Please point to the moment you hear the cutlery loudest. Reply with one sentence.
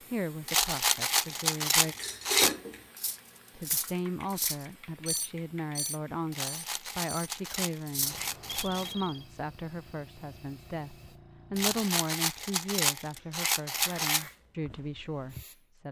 The loudest moment of the cutlery is at 2 seconds.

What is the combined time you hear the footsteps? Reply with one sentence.
You can't hear the footsteps here.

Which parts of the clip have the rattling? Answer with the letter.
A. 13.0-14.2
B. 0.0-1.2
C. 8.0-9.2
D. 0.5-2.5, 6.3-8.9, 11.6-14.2
D.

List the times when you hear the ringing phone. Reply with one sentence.
You can hear the ringing phone from 8.0 to 9.2 s.